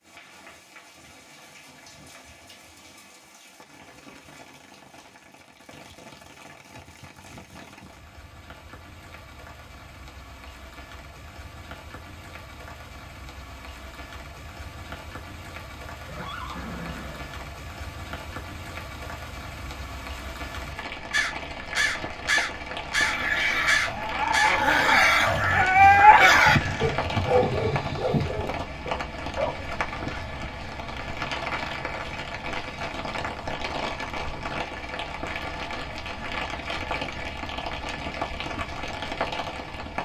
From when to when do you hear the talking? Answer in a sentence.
You can't hear the talking here.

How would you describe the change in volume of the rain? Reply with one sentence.
The loudness of the rain goes up.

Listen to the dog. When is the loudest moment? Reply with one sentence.
The volume of the dog peaks at 26 seconds.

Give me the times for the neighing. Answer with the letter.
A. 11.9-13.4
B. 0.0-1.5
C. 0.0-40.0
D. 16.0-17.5
D.